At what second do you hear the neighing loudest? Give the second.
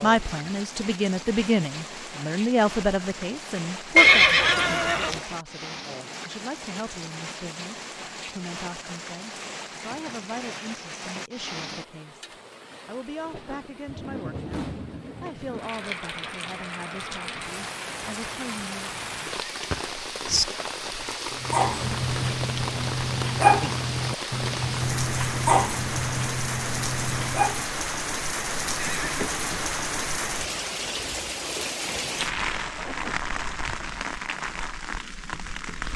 4 s.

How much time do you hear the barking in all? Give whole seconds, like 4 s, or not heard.
6 s.